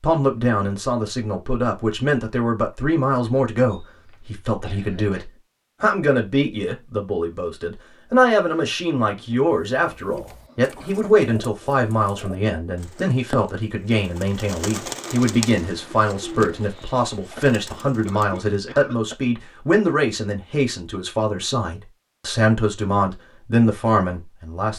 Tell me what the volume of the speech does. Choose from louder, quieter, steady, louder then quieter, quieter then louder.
steady.